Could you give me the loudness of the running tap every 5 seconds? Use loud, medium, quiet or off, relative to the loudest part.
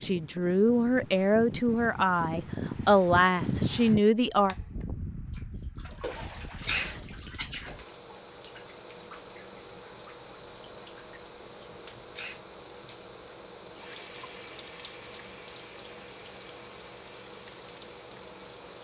off, loud, loud, medium.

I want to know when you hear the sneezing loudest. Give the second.
7 s.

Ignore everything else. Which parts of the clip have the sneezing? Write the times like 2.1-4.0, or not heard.
6.2-7.7, 11.7-12.4.